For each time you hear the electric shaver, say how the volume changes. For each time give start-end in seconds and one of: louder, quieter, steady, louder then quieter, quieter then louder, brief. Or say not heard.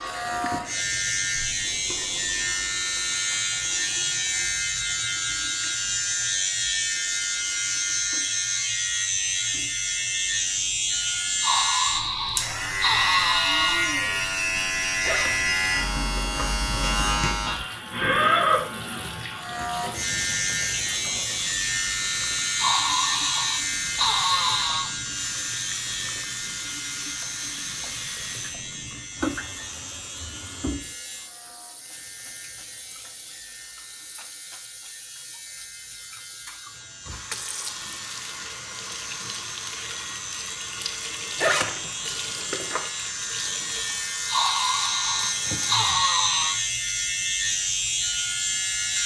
0.0-49.0 quieter then louder.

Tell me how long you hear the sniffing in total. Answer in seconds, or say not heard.
7 s.